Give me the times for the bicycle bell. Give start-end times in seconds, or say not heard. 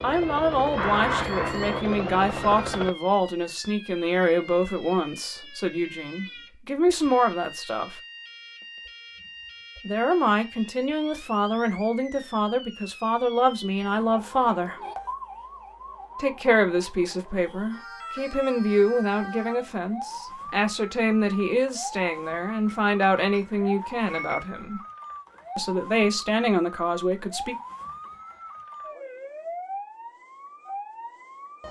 0.8-1.8, 22.6-24.4.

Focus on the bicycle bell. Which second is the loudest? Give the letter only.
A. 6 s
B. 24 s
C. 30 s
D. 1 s
D.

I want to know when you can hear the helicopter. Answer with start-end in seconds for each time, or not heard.
0.0-3.0.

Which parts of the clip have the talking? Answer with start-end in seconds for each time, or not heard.
0.0-8.0, 9.8-14.8, 16.1-24.8, 25.6-27.6.